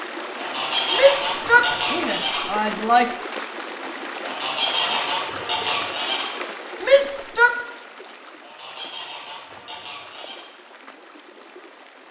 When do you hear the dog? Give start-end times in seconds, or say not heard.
not heard.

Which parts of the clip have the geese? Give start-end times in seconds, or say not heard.
0.3-2.5, 4.2-6.3, 8.4-10.4.